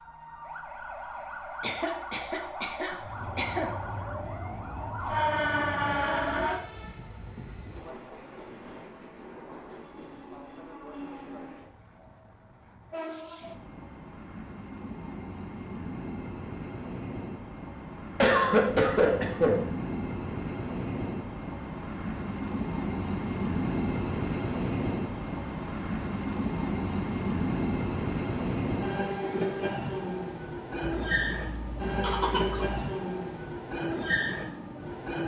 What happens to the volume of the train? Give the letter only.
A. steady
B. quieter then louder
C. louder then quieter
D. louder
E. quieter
D.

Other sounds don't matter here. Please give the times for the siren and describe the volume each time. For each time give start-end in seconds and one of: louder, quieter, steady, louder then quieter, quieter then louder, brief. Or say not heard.
0.0-6.6 louder.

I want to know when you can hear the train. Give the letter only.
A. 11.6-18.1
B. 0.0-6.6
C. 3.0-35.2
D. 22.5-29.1
C.